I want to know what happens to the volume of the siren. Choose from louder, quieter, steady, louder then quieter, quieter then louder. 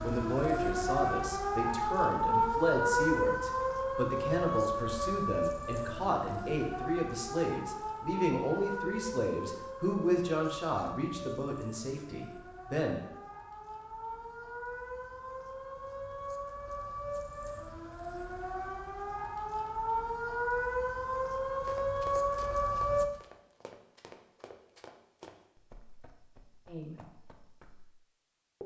quieter then louder.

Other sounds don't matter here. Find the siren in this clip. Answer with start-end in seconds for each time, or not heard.
0.0-23.1.